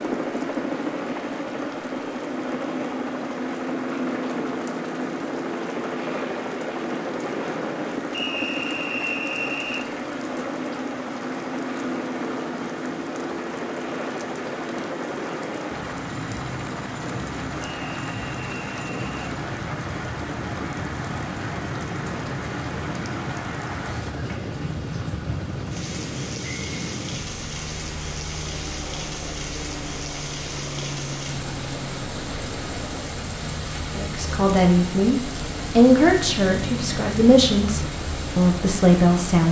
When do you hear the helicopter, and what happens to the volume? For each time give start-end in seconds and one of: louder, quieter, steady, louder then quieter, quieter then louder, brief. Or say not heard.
0.0-39.2 quieter.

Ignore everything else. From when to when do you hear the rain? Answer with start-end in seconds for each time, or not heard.
0.0-39.4.